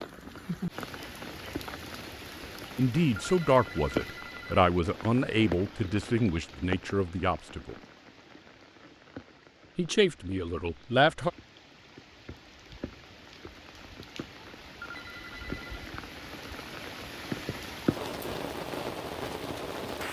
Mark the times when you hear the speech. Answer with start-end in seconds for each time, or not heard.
2.8-7.8, 9.8-11.3.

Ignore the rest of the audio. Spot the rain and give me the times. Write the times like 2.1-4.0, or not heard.
0.0-20.0.